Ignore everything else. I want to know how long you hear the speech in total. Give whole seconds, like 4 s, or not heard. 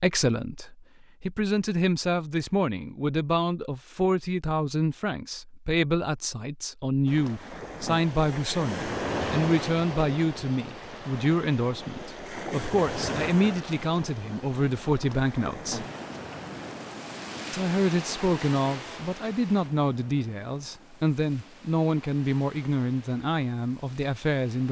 23 s.